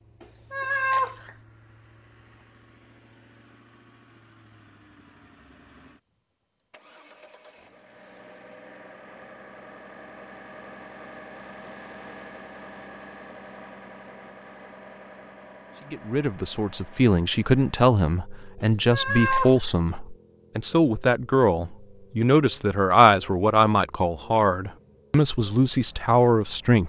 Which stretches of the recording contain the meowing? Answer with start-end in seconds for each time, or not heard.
0.2-1.3, 18.6-19.7.